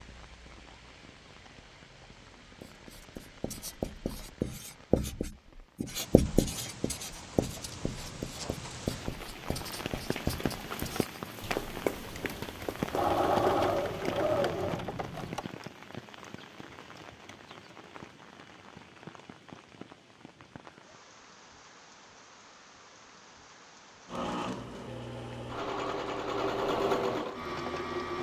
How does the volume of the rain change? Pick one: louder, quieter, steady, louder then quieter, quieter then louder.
louder then quieter.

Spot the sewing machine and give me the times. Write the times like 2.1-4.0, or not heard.
12.9-15.4, 24.1-28.1.